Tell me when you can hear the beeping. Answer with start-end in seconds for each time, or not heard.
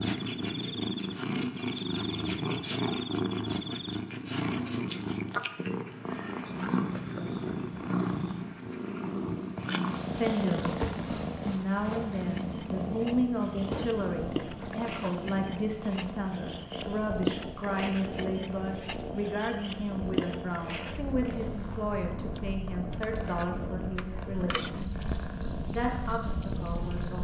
not heard.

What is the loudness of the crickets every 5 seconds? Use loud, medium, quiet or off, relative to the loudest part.
medium, medium, medium, loud, loud, loud.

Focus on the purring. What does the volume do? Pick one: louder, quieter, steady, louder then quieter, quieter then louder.
quieter.